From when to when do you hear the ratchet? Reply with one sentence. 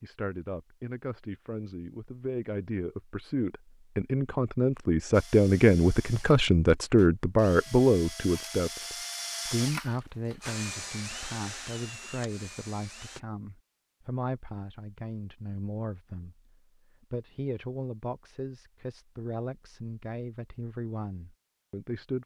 The ratchet can't be heard in this clip.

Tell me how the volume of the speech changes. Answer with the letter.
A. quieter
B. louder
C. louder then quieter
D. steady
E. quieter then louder
C.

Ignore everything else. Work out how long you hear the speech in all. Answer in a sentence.
The speech can be heard for 22 seconds in total.